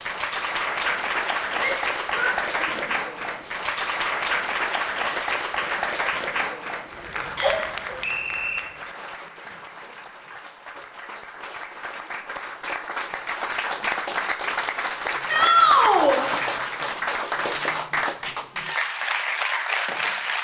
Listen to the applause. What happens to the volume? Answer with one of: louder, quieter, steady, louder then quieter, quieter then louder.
quieter then louder.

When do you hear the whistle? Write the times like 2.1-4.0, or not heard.
7.3-8.6.